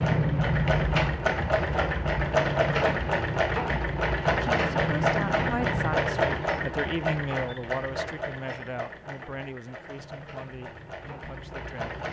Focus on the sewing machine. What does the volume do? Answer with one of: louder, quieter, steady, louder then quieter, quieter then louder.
quieter.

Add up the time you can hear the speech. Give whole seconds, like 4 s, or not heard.
8 s.